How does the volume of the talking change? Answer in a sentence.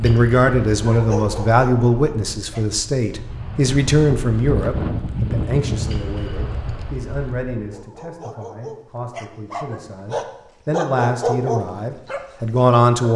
The loudness of the talking goes down, then up.